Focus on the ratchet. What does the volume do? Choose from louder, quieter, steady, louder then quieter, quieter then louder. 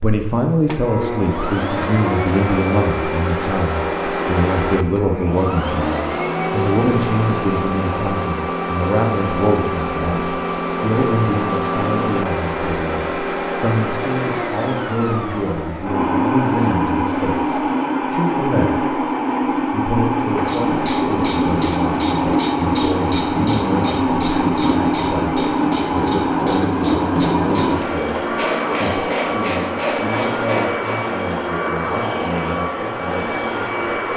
steady.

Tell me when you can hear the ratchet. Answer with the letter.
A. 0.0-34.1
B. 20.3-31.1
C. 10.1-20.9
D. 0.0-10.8
B.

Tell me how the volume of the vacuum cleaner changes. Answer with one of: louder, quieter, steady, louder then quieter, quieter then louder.
steady.